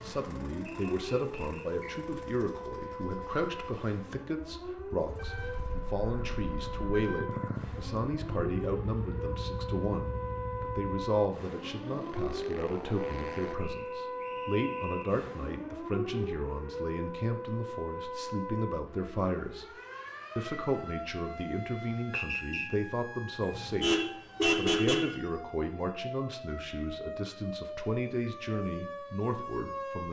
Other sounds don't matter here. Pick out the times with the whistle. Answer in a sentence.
You can hear the whistle from 0.7 to 2.0 s, from 13.6 to 15.2 s and from 22.1 to 22.7 s.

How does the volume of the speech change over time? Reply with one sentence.
The volume of the speech stays about the same.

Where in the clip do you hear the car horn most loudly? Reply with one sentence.
The loudest moment of the car horn is at 25 seconds.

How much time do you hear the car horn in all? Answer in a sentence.
You can hear the car horn for 4 seconds altogether.